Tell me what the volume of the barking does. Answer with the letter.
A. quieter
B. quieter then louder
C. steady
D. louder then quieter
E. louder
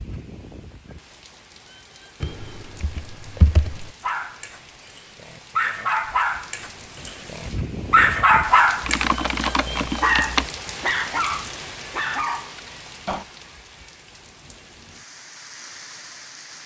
D.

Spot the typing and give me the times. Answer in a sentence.
The typing can be heard from 2.2 to 3.9 s and from 8.8 to 10.5 s.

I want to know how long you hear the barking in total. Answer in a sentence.
The barking can be heard for 9 seconds in total.